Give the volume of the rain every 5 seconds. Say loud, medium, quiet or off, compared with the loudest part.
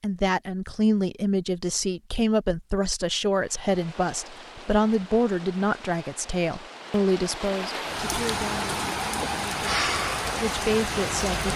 quiet, loud, loud.